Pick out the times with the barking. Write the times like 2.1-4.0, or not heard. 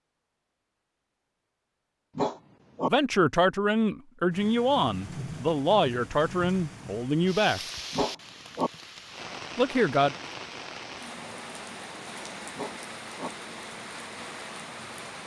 2.1-2.9, 7.9-8.7, 12.6-13.3.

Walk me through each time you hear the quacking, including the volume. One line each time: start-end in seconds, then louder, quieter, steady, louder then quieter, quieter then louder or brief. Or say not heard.
not heard.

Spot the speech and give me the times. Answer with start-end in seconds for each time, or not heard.
2.9-7.6, 9.6-10.2.